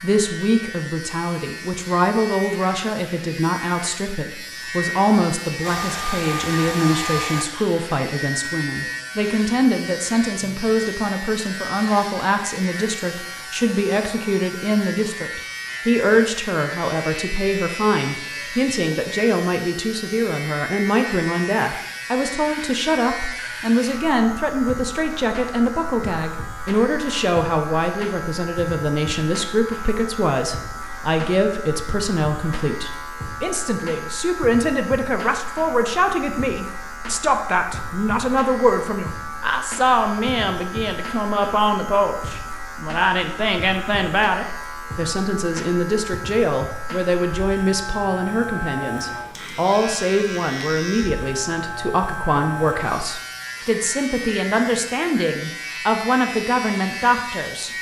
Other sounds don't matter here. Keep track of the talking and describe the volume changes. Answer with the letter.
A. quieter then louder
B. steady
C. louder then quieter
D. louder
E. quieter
B.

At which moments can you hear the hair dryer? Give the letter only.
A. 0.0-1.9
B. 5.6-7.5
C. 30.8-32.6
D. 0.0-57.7
B.